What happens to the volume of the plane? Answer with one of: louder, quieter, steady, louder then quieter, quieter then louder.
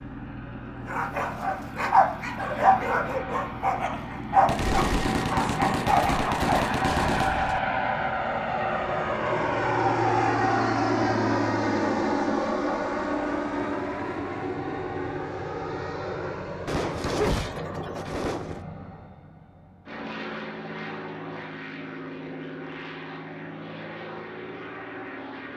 louder then quieter.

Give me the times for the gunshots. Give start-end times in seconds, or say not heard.
4.5-7.6, 16.6-18.6.